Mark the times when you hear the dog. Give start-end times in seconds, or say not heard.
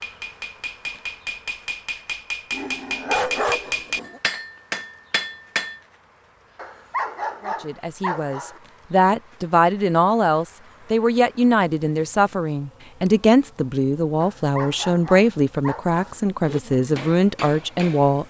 2.5-4.2, 6.5-8.6, 14.2-16.2.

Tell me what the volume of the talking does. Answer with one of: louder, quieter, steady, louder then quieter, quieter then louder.
steady.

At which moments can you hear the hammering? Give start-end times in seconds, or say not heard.
0.0-5.8, 16.4-18.2.